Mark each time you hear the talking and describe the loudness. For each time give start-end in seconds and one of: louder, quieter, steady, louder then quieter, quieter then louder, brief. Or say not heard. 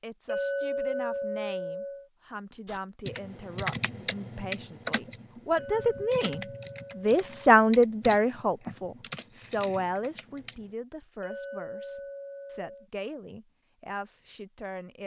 0.0-15.0 louder then quieter.